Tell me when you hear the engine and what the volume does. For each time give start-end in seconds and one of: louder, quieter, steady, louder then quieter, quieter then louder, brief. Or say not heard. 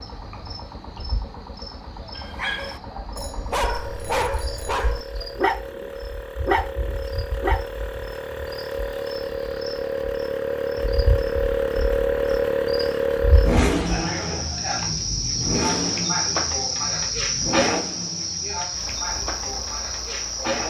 0.0-20.6 louder then quieter.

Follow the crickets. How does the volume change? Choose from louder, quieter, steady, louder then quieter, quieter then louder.
louder.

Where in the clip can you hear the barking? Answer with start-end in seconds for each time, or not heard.
2.1-7.6.